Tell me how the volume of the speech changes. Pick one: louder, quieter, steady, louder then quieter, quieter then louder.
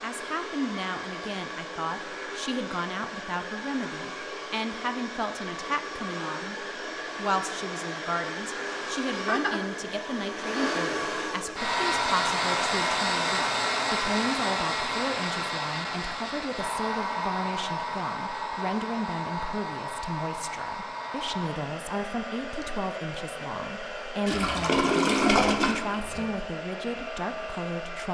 steady.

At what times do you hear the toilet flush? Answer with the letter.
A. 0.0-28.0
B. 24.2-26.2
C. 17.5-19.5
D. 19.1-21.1
B.